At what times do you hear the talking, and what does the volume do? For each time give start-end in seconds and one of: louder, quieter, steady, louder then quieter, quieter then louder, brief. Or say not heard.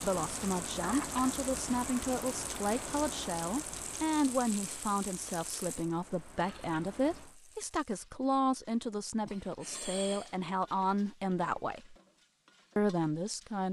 0.0-11.9 steady
12.8-13.6 brief.